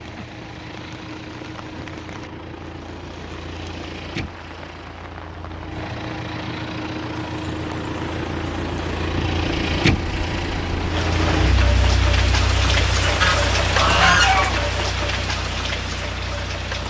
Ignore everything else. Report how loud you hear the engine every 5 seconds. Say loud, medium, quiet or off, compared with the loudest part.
medium, loud, loud, medium.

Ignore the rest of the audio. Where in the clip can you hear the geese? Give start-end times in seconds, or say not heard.
13.0-14.6.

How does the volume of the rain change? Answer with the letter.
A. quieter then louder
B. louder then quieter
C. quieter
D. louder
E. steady
D.